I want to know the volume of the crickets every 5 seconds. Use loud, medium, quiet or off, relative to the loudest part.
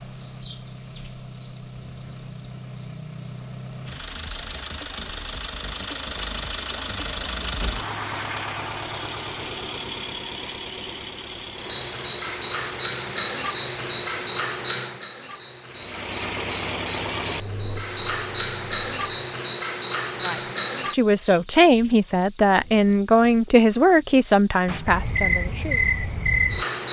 loud, medium, loud, loud, loud, loud.